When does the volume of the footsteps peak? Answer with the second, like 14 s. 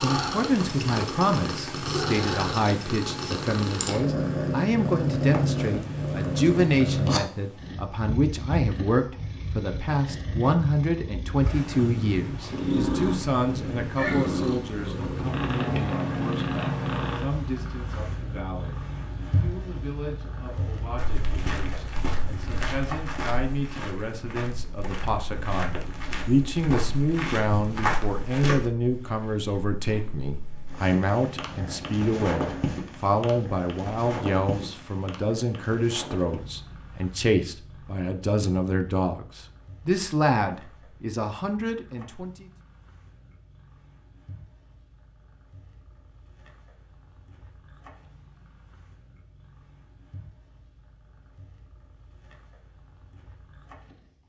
28 s.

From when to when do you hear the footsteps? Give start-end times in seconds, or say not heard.
20.9-28.7.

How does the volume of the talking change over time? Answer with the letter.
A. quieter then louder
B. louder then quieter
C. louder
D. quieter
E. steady
A.